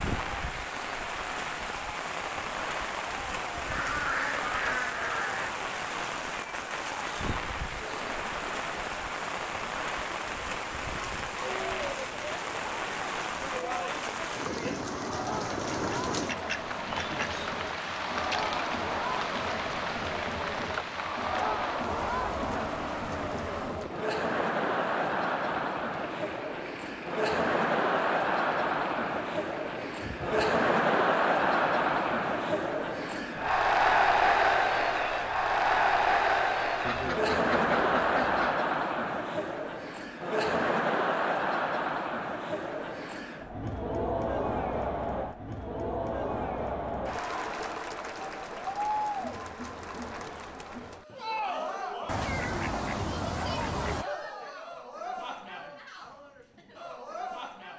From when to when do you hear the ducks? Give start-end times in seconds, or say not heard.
3.6-5.5, 15.5-17.5, 36.9-38.6, 52.0-54.0.